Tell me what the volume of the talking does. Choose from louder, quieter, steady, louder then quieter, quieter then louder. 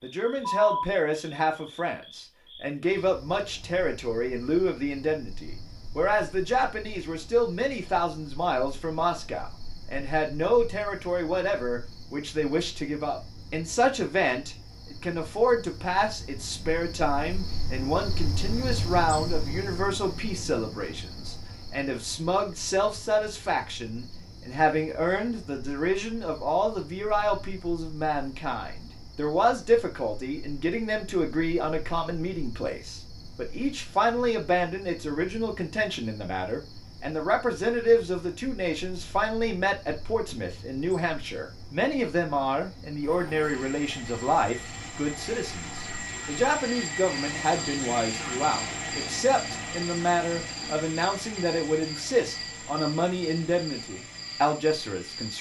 steady.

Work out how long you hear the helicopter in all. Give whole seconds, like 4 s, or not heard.
12 s.